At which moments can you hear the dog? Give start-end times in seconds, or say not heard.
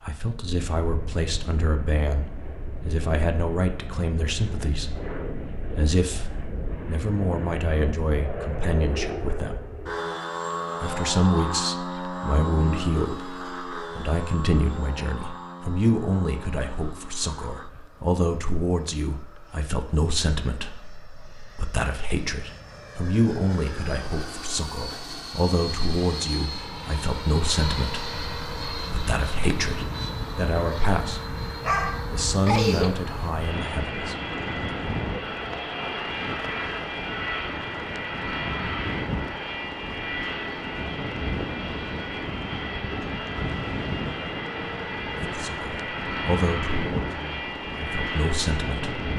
31.6-33.1.